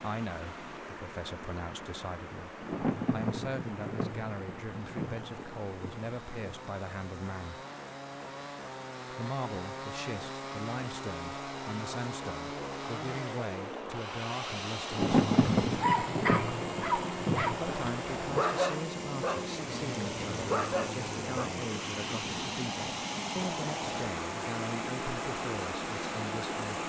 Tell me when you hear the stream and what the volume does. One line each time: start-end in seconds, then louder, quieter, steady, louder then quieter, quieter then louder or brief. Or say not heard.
0.0-26.8 louder.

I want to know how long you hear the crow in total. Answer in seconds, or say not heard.
not heard.